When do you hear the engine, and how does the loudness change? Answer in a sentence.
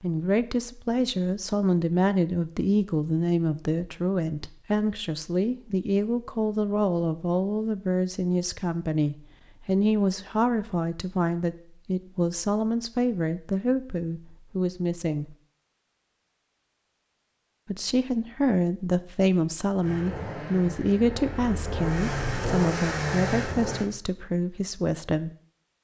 You can hear the engine from 19.8 to 23.9 s, getting louder.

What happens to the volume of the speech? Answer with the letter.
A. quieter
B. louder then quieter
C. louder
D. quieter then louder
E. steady
E.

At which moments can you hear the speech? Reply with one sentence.
You can hear the speech from 0.0 to 15.3 s and from 17.6 to 25.3 s.